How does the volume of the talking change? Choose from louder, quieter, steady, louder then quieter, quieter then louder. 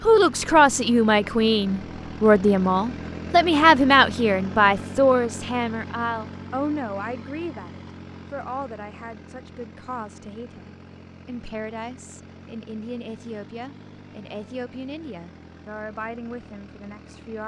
quieter.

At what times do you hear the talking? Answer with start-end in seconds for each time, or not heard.
0.0-17.4.